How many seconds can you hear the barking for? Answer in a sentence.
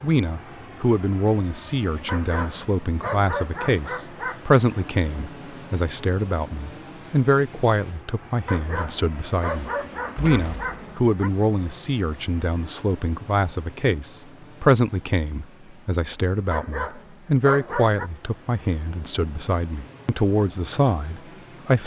You can hear the barking for 7 seconds altogether.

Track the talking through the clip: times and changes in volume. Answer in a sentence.
The talking can be heard from 0.0 to 21.8 s, at a steady volume.